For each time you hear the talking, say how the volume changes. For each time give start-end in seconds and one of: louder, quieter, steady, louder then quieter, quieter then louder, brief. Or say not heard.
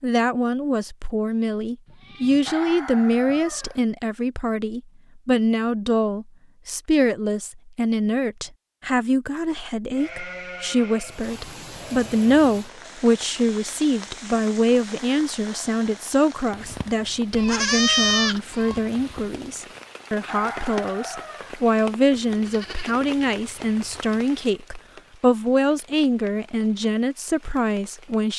0.0-28.3 steady.